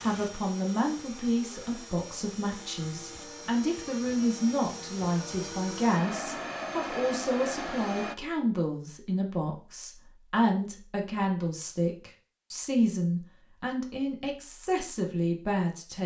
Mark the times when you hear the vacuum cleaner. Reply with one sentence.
The vacuum cleaner can be heard from 0.0 to 8.2 s.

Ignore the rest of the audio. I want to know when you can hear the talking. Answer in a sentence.
You can hear the talking from 0.0 to 16.0 s.